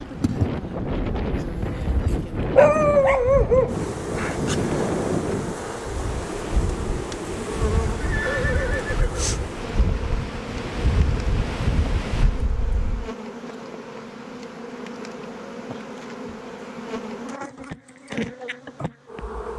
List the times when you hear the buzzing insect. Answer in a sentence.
The buzzing insect can be heard from 0.0 to 19.5 s.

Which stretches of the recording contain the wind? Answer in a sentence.
You can hear the wind from 0.0 to 13.1 s.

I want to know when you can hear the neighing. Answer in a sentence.
You can hear the neighing from 8.0 to 9.3 s.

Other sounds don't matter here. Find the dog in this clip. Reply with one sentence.
The dog can be heard from 1.6 to 3.9 s.